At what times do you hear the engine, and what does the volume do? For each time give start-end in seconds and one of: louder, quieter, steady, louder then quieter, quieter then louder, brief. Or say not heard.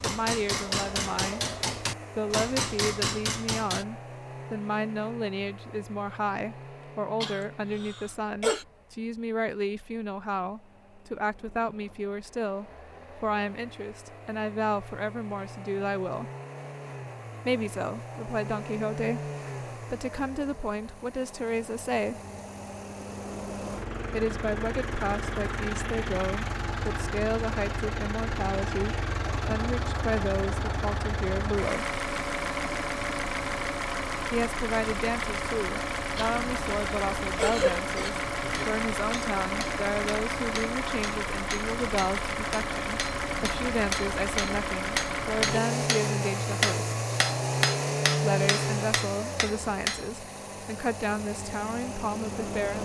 0.0-52.8 louder.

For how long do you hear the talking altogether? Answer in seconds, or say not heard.
45 s.